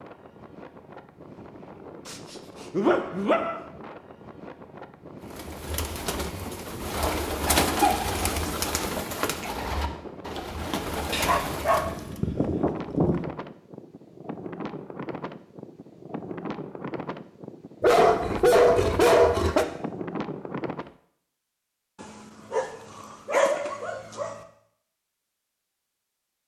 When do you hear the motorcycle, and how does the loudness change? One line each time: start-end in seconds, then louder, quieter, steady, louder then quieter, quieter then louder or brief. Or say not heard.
not heard.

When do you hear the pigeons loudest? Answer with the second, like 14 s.
8 s.